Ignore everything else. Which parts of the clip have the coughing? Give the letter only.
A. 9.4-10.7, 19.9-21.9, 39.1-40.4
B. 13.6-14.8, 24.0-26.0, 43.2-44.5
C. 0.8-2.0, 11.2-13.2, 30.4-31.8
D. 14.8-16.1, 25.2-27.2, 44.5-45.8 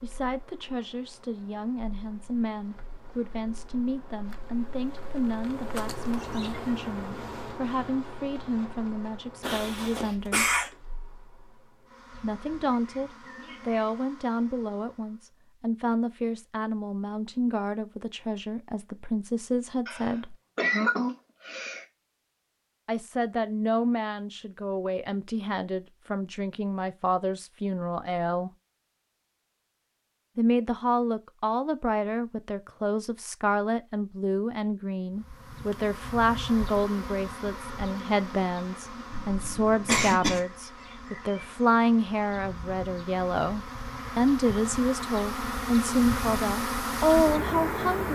A.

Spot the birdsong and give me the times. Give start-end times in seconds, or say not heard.
not heard.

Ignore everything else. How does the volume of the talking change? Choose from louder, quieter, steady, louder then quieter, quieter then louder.
louder.